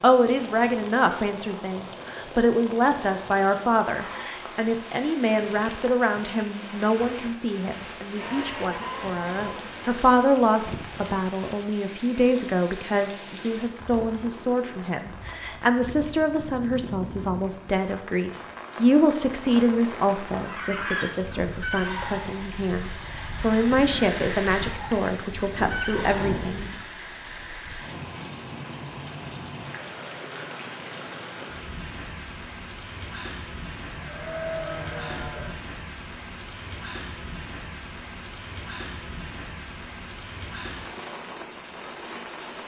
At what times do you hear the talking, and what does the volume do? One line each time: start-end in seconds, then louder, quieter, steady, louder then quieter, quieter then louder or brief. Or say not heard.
0.0-26.7 steady.